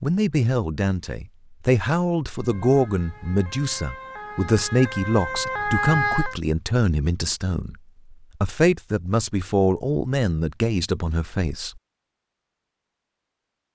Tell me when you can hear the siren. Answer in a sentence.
The siren can be heard from 2.4 to 6.3 s.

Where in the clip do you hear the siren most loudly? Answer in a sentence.
The loudest moment of the siren is at 6 seconds.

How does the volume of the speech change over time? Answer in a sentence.
The volume of the speech stays about the same.